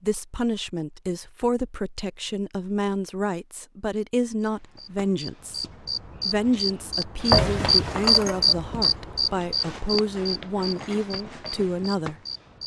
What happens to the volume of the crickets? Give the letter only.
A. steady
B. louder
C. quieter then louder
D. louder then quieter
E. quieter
D.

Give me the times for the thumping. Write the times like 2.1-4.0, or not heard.
7.3-8.0.